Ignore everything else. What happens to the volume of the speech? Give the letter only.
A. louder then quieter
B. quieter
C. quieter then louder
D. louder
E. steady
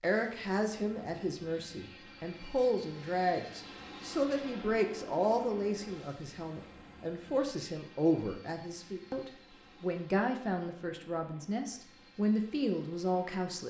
E.